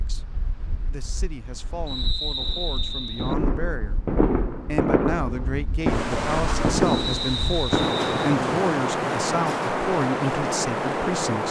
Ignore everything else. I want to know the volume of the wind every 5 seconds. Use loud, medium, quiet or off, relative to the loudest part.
quiet, loud, loud.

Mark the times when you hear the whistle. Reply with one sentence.
You can hear the whistle from 1.9 to 3.4 s and from 6.8 to 8.3 s.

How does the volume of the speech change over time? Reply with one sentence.
The volume of the speech goes up.